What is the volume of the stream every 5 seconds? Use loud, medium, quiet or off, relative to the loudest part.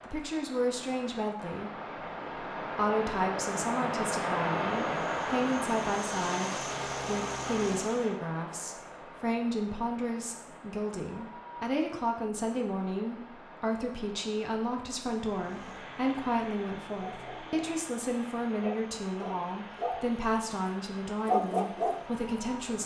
loud, loud, quiet, quiet, quiet.